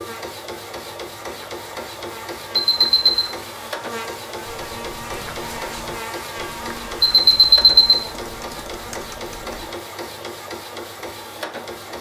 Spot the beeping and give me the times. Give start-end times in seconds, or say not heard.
2.5-3.1, 7.0-8.0.